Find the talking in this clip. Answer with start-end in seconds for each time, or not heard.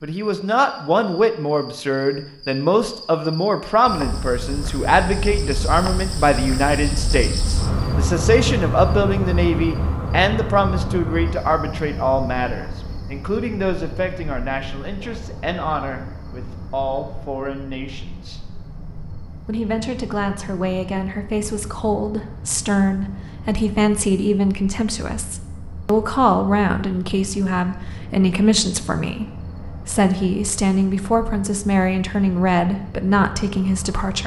0.0-18.4, 19.4-34.2.